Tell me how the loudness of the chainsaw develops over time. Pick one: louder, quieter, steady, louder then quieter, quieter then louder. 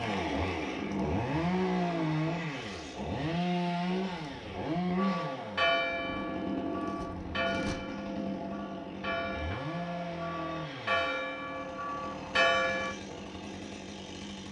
quieter.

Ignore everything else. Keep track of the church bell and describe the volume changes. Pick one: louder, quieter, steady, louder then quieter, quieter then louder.
quieter then louder.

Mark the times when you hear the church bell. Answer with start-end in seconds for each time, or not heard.
5.0-12.9.